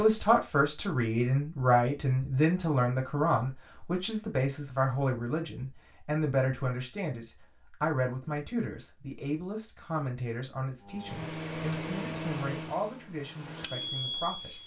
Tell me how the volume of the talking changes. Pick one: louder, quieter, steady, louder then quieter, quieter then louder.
quieter.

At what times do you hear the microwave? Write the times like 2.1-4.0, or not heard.
10.8-14.6.